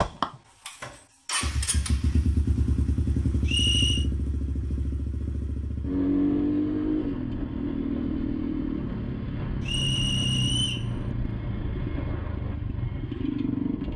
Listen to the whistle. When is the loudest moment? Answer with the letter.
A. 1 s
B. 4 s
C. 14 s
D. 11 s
B.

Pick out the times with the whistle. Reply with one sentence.
The whistle can be heard from 3.5 to 4.0 s and from 9.7 to 10.9 s.